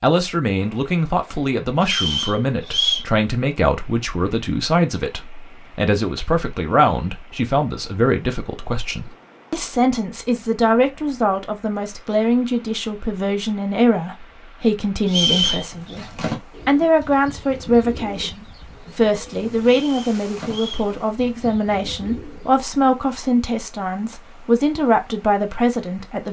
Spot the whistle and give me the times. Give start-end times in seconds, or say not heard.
1.8-3.0, 15.1-15.9, 19.8-20.9.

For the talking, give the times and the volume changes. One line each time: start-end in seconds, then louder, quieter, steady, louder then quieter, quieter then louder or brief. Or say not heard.
0.0-26.2 steady.